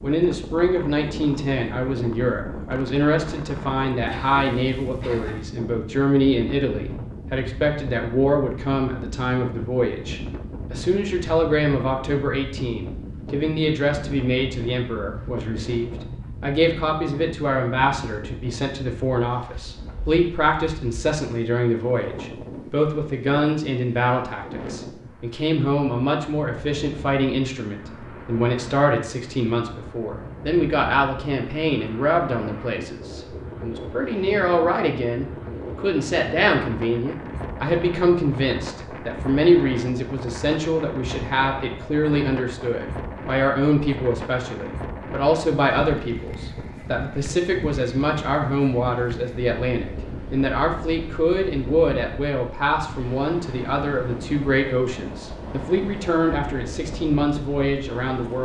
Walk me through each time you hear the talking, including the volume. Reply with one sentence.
The talking can be heard from 0.0 to 58.3 s, at a steady volume.